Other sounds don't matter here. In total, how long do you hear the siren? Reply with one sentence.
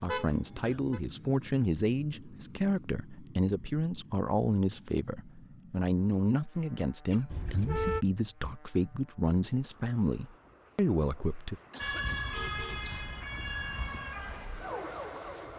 The siren can be heard for 4 seconds in total.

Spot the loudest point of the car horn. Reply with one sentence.
The loudest moment of the car horn is at 8 seconds.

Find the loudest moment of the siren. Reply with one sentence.
The volume of the siren peaks at 12 seconds.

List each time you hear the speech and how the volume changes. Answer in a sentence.
You can hear the speech from 0.0 to 11.6 s, at a steady volume.